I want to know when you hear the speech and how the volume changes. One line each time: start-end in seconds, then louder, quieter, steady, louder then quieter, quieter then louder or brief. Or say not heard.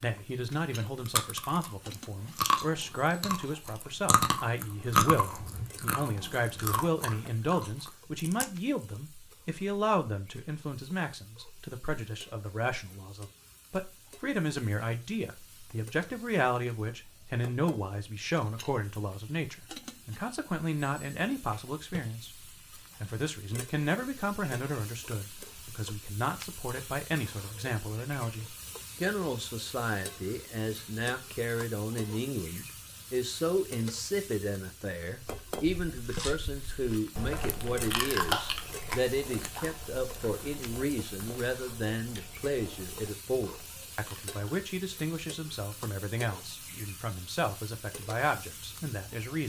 0.0-22.4 steady
23.0-49.4 steady.